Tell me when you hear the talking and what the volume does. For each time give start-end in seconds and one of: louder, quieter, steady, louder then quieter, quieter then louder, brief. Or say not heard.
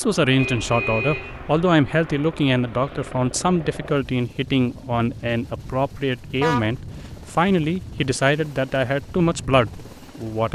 0.0-10.5 steady.